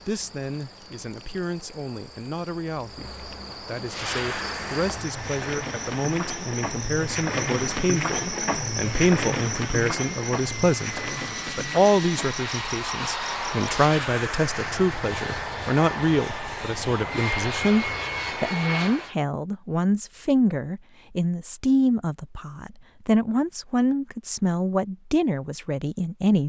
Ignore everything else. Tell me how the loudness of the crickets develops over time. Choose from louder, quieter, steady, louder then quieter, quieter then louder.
louder then quieter.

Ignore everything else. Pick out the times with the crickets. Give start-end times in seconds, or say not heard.
0.0-13.5.